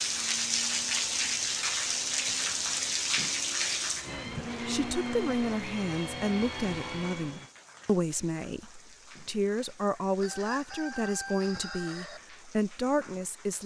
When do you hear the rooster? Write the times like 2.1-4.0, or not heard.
10.2-12.2.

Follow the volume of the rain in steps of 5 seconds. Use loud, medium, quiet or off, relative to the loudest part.
loud, quiet, quiet.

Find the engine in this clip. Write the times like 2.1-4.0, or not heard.
0.0-7.5.